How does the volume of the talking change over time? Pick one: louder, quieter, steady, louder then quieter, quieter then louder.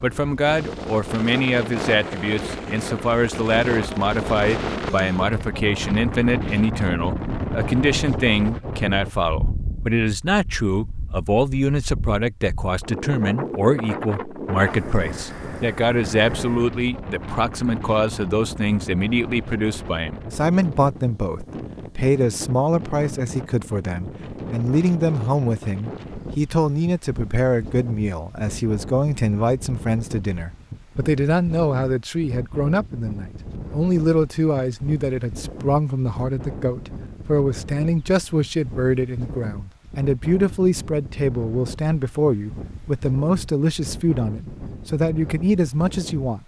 steady.